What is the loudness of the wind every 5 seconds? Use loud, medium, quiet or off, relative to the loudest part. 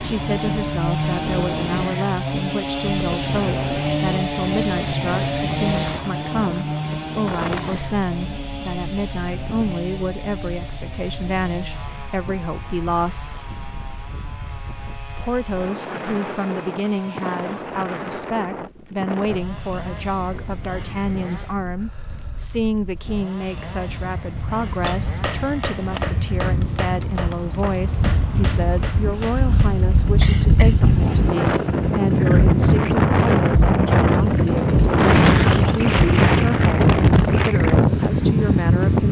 quiet, quiet, quiet, quiet, quiet, medium, loud, loud.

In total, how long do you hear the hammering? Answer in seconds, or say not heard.
5 s.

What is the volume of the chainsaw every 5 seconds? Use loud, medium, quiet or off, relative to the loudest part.
loud, loud, quiet, quiet, quiet, quiet, quiet, quiet.